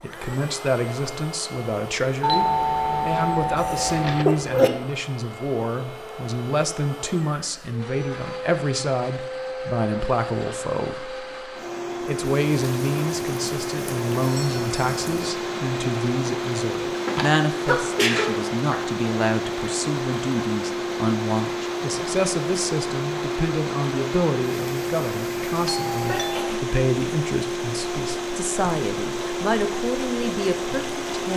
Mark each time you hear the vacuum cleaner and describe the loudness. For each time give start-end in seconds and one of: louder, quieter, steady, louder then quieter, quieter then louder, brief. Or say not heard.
0.0-31.3 louder.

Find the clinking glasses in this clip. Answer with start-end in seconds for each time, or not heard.
not heard.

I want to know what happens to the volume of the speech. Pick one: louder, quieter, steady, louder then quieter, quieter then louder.
steady.